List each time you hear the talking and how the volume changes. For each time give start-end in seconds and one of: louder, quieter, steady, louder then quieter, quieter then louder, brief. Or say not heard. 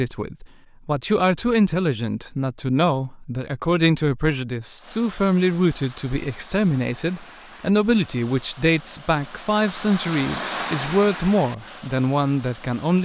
0.0-13.0 steady.